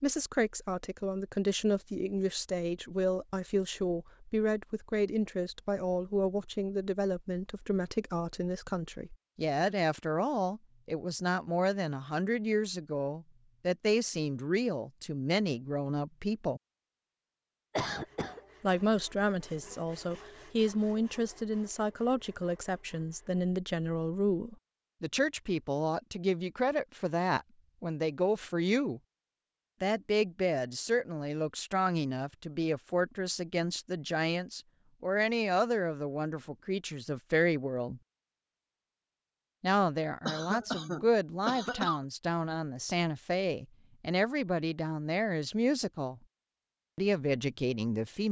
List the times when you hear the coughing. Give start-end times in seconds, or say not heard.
17.8-18.4, 40.2-42.0.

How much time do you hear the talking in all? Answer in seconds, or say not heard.
43 s.